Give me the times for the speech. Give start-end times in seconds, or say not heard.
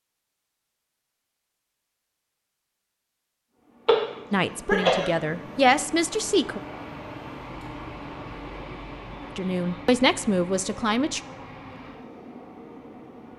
4.3-6.6, 9.3-11.2.